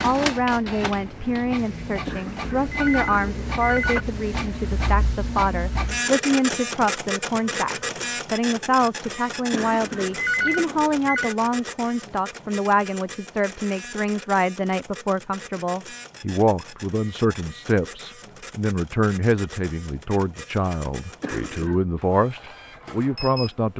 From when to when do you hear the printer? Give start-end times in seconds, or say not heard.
0.0-23.7.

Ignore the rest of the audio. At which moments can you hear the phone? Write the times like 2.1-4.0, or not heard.
2.0-4.0, 9.5-11.3, 21.2-21.8.